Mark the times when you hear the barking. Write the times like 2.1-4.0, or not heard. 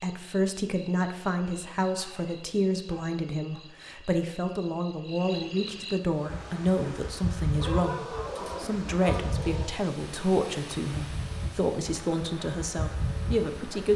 1.9-3.6, 7.5-9.8.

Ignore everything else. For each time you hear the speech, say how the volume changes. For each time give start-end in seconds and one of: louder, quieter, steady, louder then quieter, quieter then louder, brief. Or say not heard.
0.0-13.9 steady.